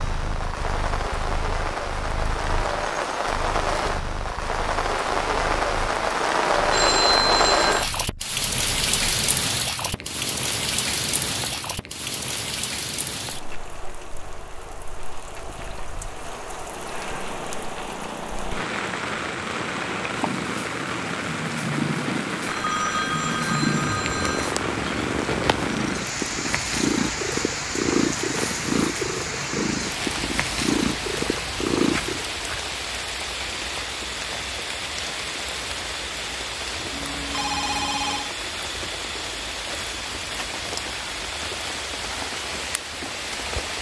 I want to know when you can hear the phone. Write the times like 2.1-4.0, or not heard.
6.7-7.9, 22.4-24.5, 36.9-38.3.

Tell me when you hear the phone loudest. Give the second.
7 s.